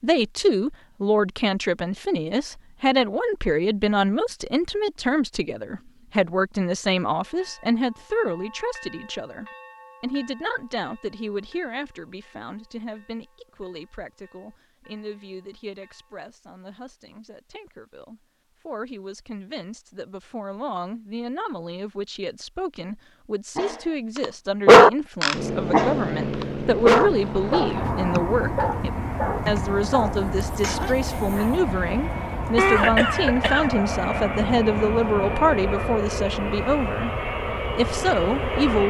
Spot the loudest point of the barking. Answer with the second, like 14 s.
25 s.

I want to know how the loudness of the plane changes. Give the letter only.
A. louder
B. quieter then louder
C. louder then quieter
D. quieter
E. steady
E.